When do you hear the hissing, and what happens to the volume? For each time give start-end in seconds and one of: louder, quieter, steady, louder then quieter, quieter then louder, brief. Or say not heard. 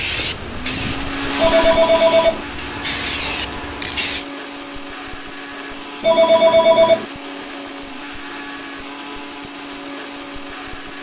0.0-4.2 quieter then louder.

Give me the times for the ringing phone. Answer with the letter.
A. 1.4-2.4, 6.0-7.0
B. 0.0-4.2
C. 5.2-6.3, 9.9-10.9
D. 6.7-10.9
A.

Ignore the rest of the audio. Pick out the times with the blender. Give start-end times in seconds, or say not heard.
0.1-10.9.